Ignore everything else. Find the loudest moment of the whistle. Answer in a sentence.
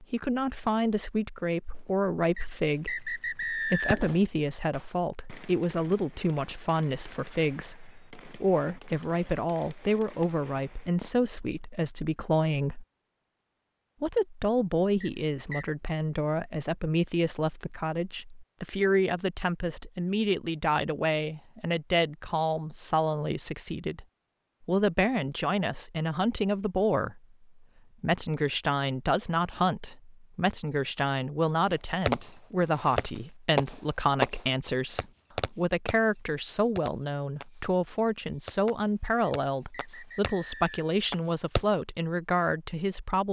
The loudest moment of the whistle is at 4 seconds.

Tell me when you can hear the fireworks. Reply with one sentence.
The fireworks can be heard from 1.7 to 2.1 s, from 3.0 to 11.6 s and from 32.0 to 41.6 s.